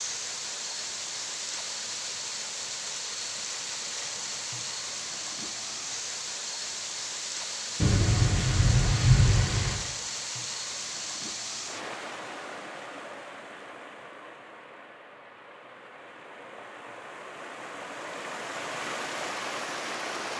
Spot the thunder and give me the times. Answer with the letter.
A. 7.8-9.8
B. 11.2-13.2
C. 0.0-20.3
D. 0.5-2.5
A.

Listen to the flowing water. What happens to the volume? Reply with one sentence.
The volume of the flowing water goes down, then up.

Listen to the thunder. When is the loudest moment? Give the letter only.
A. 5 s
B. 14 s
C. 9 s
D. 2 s
C.